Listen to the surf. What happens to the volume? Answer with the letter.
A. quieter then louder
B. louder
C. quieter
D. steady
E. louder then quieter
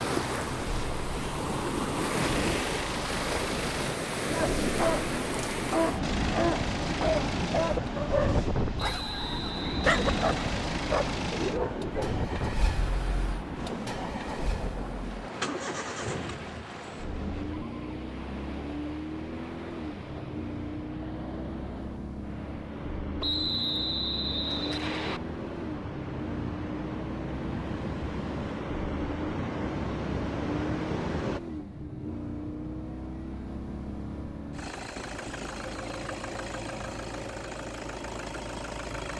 A.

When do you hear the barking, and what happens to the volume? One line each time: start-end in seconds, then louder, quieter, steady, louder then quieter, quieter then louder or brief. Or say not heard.
4.3-12.2 steady.